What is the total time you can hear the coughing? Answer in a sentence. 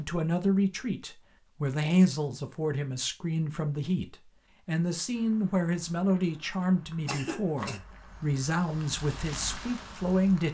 You can hear the coughing for 2 seconds altogether.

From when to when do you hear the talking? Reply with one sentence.
The talking can be heard from 0.0 to 10.4 s.